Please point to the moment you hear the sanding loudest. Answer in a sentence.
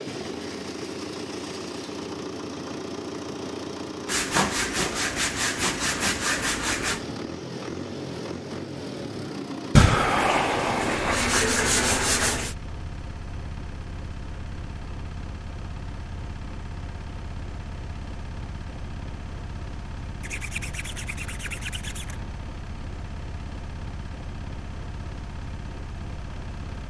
The loudest moment of the sanding is at 10 seconds.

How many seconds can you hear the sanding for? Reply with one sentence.
The sanding can be heard for 8 seconds in total.